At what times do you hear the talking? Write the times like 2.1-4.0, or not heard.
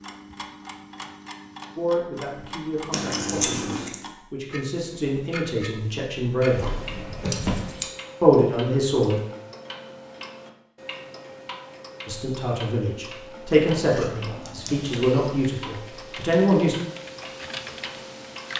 1.8-6.7, 8.2-9.2, 12.1-16.8.